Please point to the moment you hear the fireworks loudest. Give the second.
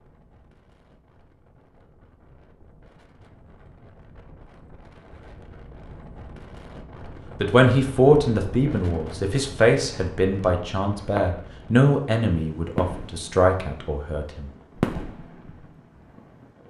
15 s.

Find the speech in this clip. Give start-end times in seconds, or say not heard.
7.4-14.5.